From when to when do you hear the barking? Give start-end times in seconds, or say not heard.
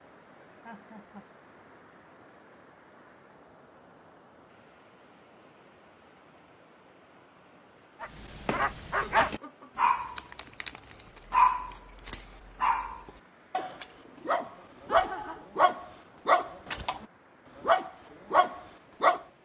8.0-19.2.